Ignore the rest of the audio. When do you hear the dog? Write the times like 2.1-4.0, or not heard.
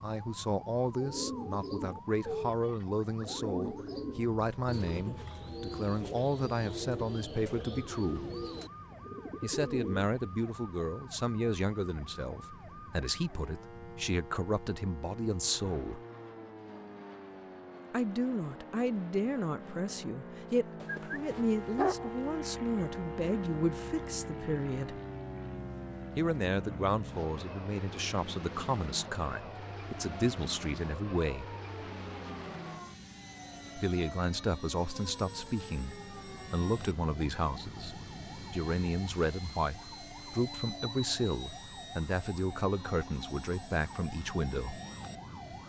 20.8-22.1.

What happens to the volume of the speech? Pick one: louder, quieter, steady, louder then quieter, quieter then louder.
steady.